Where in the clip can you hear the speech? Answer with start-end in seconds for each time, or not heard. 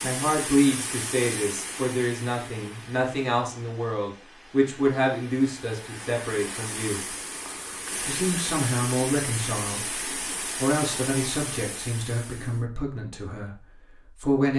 0.0-7.0, 8.1-14.5.